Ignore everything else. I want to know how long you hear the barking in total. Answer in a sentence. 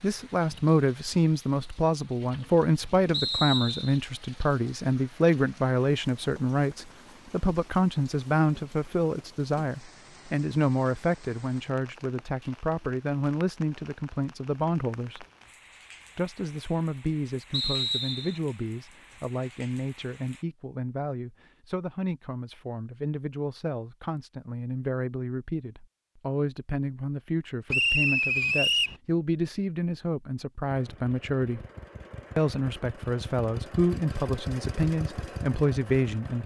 You can't hear the barking here.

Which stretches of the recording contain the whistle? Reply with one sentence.
You can hear the whistle from 3.1 to 4.0 s, from 17.5 to 18.4 s and from 27.7 to 28.9 s.